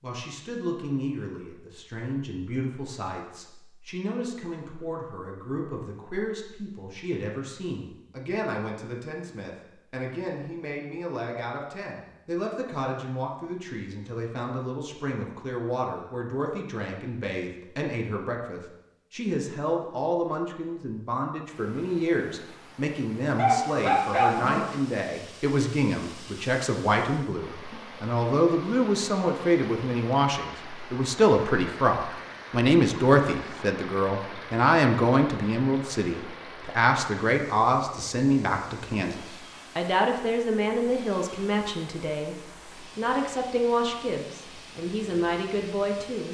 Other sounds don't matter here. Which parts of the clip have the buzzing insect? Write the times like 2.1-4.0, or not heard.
not heard.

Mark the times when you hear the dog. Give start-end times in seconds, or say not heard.
23.4-24.6.